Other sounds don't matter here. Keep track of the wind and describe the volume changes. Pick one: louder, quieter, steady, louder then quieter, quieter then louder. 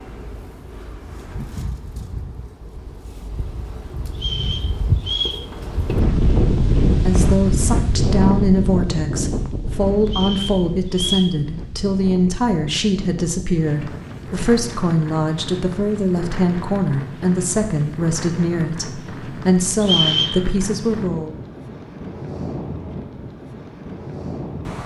louder then quieter.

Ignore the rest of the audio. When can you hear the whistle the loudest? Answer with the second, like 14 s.
20 s.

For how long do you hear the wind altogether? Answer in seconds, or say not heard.
25 s.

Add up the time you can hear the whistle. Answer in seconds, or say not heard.
3 s.